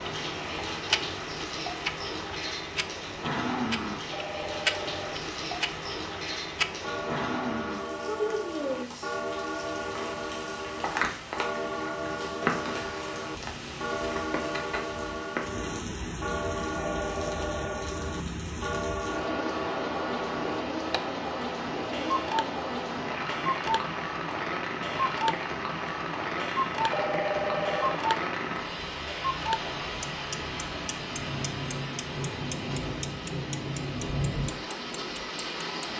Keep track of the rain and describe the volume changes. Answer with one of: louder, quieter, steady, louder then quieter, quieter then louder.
steady.